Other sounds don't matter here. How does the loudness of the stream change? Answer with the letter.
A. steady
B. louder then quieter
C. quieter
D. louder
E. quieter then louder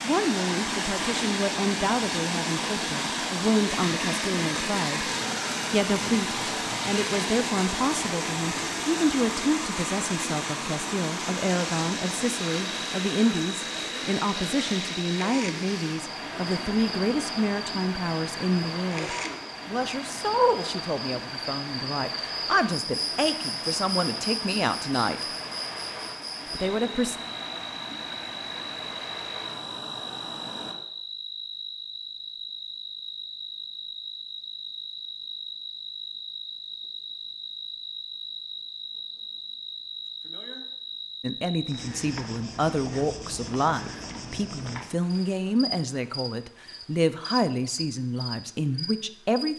C.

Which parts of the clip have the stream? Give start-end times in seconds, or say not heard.
0.0-30.8.